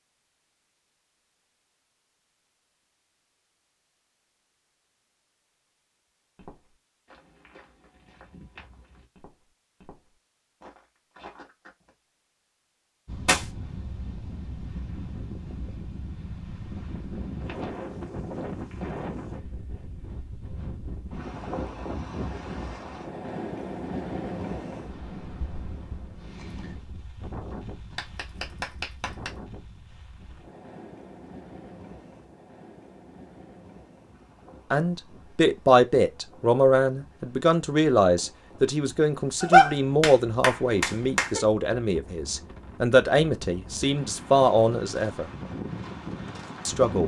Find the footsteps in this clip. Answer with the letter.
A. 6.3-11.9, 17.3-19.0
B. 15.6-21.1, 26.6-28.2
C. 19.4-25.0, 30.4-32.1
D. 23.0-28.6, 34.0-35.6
A.